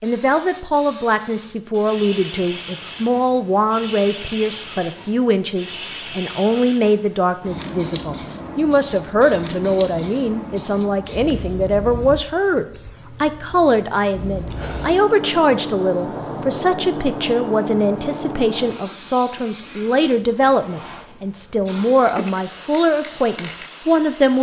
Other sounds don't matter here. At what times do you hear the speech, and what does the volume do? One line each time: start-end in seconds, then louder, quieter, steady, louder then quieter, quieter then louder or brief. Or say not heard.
0.0-24.3 steady.